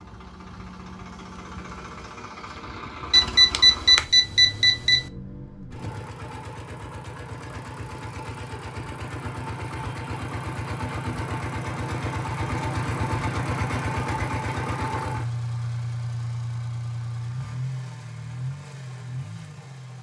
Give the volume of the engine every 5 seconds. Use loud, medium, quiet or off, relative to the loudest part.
medium, medium, loud, loud.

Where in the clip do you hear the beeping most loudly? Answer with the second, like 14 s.
4 s.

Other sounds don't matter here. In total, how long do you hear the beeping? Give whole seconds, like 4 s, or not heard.
2 s.